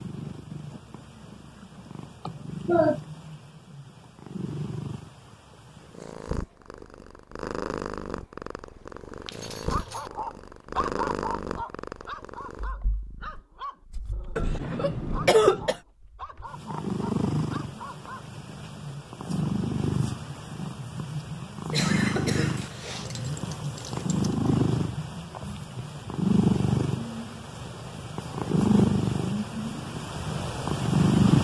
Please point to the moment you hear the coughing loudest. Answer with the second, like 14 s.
15 s.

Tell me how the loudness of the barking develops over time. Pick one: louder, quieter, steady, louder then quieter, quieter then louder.
quieter.